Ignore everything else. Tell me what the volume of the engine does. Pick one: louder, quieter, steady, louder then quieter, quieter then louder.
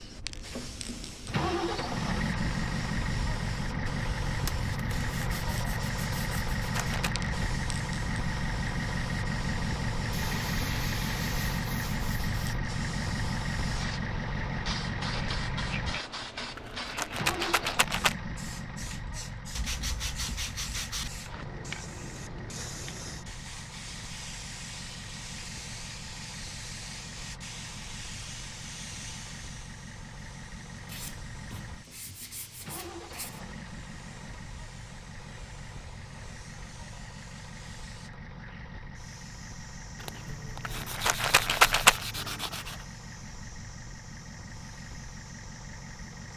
quieter.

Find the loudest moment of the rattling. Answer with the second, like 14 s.
42 s.